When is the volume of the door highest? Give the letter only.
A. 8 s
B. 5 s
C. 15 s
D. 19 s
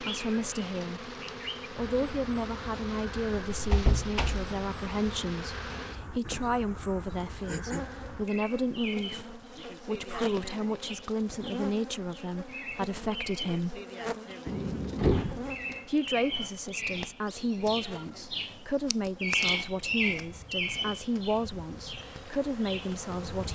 C.